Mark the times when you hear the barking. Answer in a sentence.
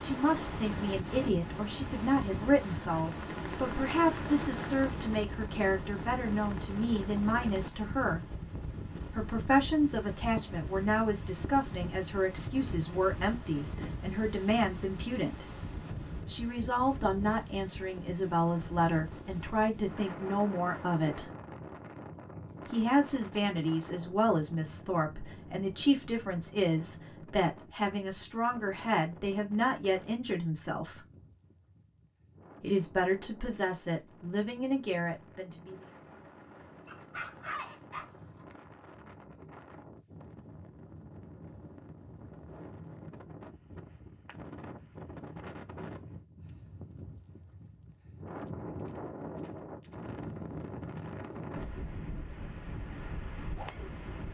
You can hear the barking from 36.9 to 38.1 s.